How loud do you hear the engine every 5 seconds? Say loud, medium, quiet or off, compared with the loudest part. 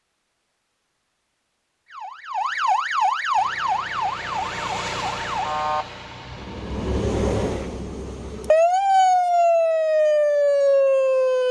loud, loud, off.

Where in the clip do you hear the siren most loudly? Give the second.
9 s.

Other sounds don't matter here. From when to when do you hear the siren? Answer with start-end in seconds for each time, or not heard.
1.9-11.4.